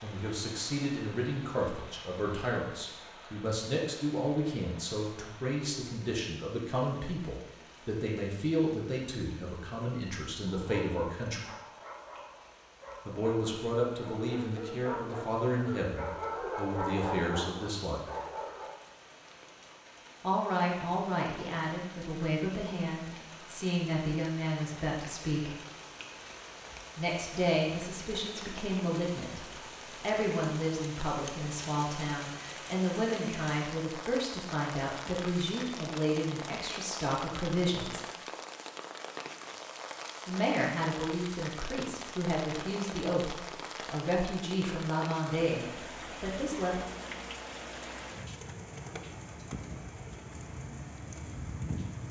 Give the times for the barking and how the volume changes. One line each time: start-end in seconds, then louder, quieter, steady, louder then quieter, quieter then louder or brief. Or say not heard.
10.4-18.8 louder.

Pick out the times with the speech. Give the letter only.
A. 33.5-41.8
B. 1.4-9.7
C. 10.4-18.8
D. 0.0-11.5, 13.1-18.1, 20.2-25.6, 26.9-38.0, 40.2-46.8
D.